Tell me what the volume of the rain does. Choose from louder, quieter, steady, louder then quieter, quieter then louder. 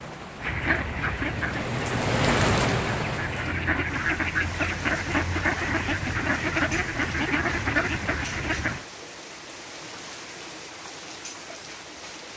quieter.